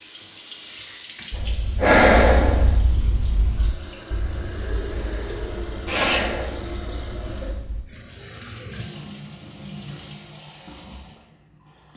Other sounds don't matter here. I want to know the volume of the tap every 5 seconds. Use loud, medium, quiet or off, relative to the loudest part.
loud, loud, medium.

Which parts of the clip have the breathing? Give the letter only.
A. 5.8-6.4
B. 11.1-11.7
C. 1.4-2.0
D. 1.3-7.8
D.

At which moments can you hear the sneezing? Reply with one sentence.
The sneezing can be heard from 5.8 to 6.4 s.